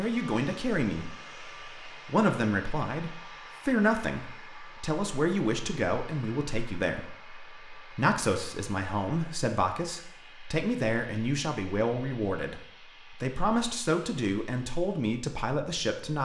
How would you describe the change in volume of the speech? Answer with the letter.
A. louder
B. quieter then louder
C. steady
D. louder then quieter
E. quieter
C.